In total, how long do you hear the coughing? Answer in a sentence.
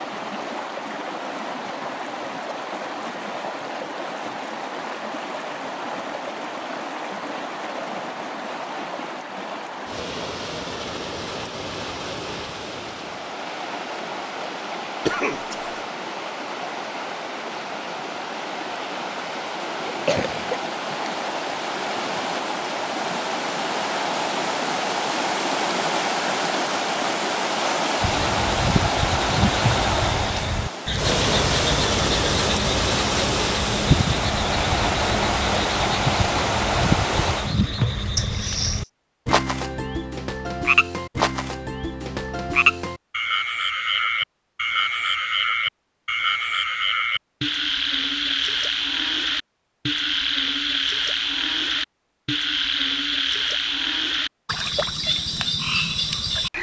The coughing can be heard for 2 seconds in total.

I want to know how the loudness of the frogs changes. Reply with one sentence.
The volume of the frogs stays about the same.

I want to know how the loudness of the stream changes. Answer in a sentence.
The volume of the stream goes up.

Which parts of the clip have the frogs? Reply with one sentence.
You can hear the frogs from 28.0 to 56.5 s.